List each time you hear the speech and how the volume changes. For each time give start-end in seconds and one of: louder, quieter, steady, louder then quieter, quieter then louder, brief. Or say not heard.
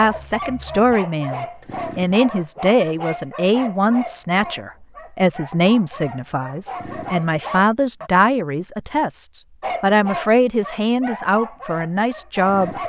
0.0-12.8 steady.